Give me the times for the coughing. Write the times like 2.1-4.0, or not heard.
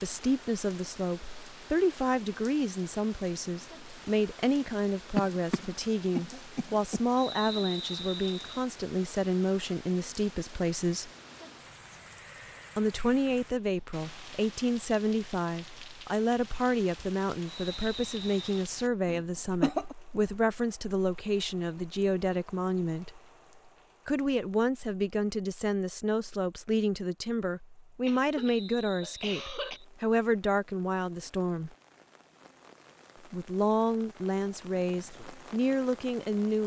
5.2-7.0, 19.1-19.9, 28.1-29.8.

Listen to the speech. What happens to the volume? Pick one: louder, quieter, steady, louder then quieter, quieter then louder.
steady.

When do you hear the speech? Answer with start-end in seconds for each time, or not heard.
0.0-11.1, 12.8-23.1, 24.1-31.7, 33.3-36.6.